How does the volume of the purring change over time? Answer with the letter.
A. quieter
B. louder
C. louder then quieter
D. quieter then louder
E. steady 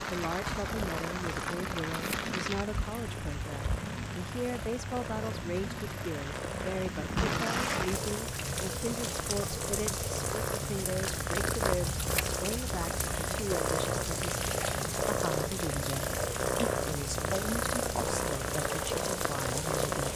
B.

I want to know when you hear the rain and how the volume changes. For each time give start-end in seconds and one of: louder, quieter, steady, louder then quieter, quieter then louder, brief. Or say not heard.
0.0-20.1 steady.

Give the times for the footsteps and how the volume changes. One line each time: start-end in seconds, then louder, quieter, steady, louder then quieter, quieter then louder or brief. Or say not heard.
not heard.